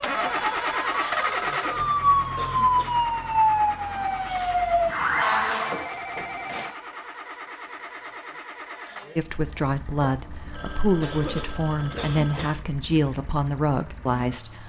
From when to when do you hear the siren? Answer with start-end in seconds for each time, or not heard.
0.1-5.9.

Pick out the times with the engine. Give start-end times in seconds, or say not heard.
0.0-14.6.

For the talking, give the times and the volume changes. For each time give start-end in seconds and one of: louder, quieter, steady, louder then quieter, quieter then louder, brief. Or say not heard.
9.2-14.6 steady.